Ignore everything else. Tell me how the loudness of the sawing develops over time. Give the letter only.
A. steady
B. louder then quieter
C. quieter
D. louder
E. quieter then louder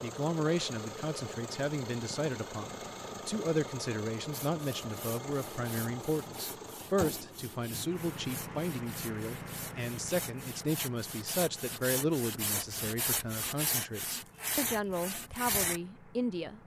D.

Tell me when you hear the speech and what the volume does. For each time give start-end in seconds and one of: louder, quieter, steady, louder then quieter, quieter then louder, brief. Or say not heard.
0.0-16.6 steady.